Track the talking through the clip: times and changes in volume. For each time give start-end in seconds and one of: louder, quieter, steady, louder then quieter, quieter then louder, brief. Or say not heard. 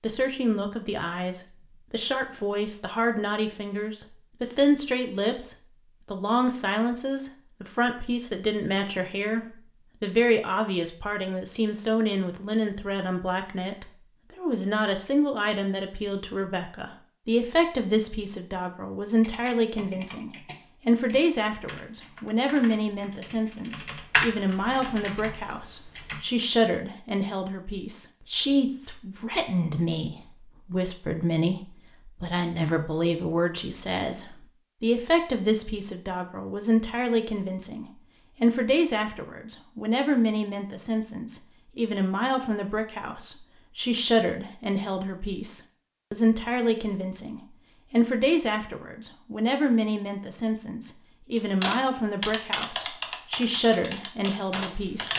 0.0-55.1 steady.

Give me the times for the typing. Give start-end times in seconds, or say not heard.
19.2-26.2, 51.4-55.1.